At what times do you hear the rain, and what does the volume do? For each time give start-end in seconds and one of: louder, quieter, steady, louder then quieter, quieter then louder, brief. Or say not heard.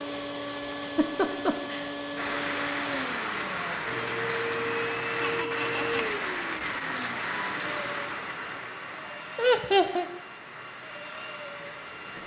2.1-12.2 quieter.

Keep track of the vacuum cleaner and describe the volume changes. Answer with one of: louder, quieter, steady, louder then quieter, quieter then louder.
quieter.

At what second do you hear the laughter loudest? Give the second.
10 s.